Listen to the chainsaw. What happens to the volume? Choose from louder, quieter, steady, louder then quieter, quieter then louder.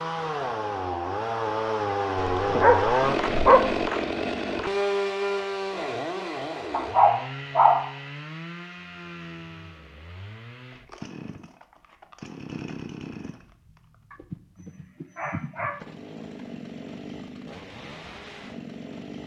quieter.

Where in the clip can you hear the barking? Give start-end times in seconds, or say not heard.
2.1-3.9, 6.7-7.9, 14.1-15.8.